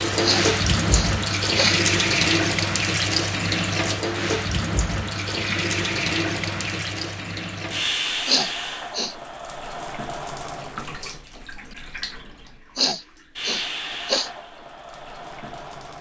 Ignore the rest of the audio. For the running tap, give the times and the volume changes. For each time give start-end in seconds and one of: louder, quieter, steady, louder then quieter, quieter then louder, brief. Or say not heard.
0.0-15.9 quieter.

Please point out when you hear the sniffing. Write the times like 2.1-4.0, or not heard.
0.2-1.8, 8.2-9.2, 12.8-14.3.